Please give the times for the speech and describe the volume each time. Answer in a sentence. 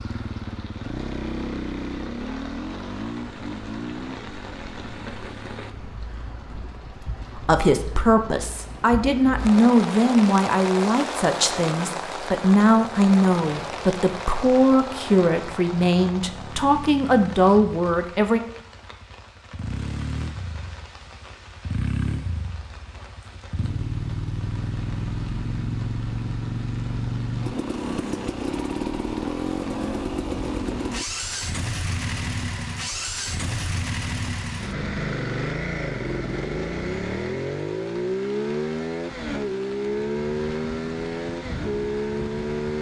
The speech can be heard from 7.3 to 18.4 s, at a steady volume.